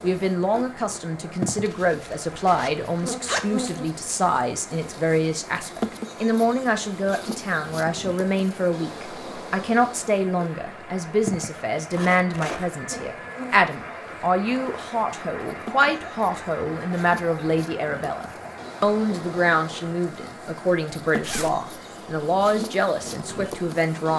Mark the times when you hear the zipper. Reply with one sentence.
You can hear the zipper from 1.6 to 3.7 s, from 11.9 to 12.8 s and from 21.2 to 21.6 s.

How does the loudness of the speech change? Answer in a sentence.
The loudness of the speech stays about the same.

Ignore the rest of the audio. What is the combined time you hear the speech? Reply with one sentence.
You can hear the speech for 24 seconds altogether.